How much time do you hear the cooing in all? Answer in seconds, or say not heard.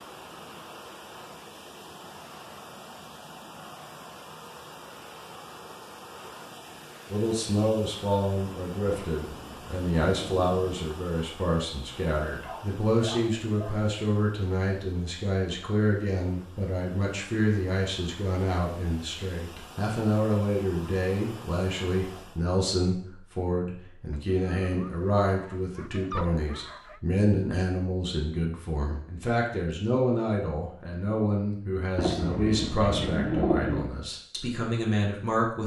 4 s.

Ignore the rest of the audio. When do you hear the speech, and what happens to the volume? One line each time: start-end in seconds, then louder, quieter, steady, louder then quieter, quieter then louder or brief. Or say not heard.
7.1-35.6 steady.